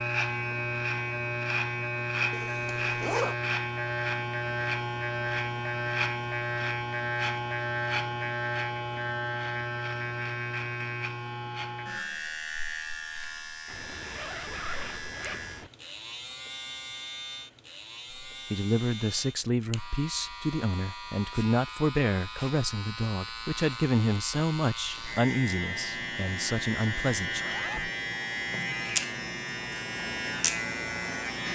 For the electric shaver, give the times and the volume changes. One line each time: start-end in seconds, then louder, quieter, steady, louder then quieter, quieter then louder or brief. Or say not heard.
0.0-31.5 quieter then louder.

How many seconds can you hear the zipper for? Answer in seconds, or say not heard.
4 s.